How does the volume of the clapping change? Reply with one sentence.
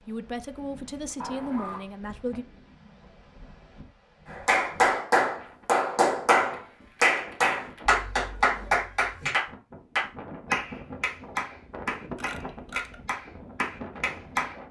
The volume of the clapping goes down.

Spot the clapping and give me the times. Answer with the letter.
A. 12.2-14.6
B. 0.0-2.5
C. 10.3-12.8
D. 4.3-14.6
D.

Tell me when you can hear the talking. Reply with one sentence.
The talking can be heard from 0.0 to 2.5 s.